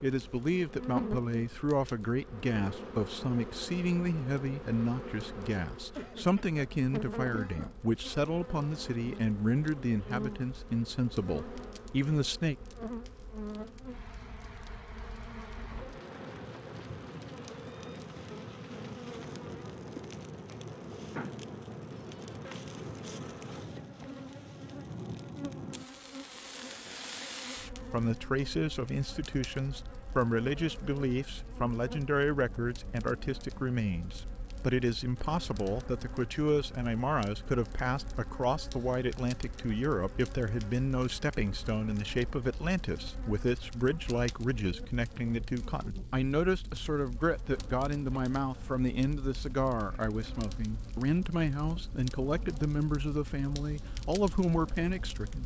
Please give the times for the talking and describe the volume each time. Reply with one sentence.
You can hear the talking from 0.0 to 12.6 s, at a steady volume; and from 27.7 to 55.4 s, at a steady volume.